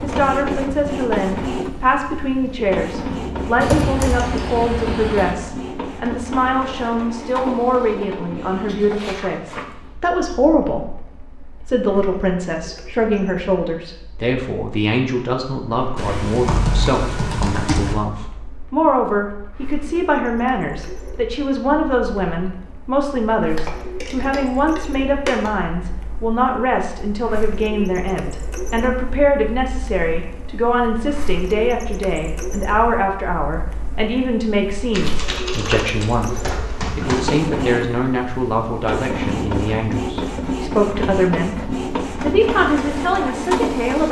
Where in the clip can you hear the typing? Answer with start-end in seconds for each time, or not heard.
3.6-5.3, 15.9-17.9, 23.4-25.5, 34.9-37.4.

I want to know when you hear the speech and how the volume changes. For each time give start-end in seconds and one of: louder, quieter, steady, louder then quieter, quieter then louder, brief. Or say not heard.
0.0-44.0 steady.